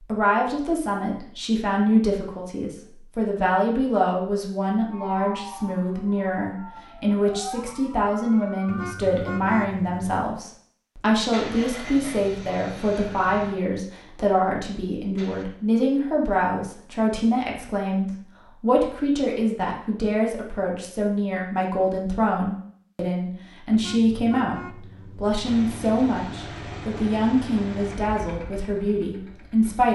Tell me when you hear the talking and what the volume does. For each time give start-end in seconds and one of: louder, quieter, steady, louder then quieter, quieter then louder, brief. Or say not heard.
0.0-29.9 steady.